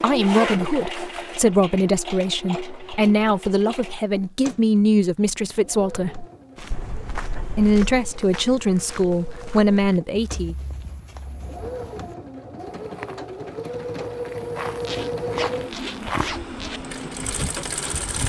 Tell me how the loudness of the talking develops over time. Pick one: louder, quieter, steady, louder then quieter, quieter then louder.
steady.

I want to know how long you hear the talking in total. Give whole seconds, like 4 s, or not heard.
9 s.